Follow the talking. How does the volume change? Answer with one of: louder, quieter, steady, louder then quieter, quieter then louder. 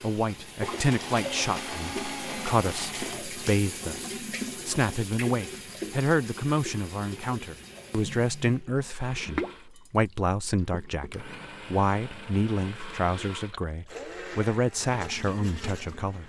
steady.